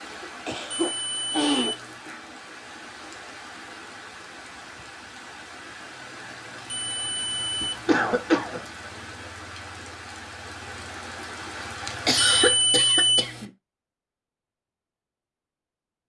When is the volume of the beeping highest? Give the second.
13 s.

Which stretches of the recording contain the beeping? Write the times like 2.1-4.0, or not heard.
0.7-2.0, 6.7-7.8, 12.2-13.4.